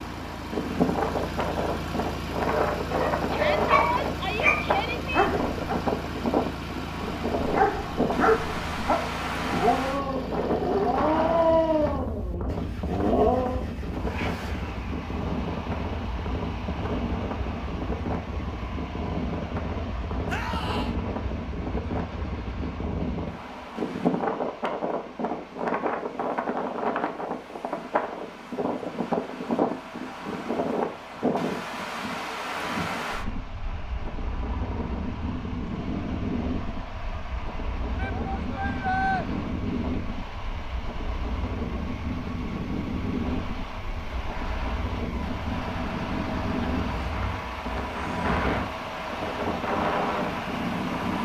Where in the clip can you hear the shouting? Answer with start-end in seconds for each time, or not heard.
3.3-5.3, 20.2-20.9, 38.0-39.2.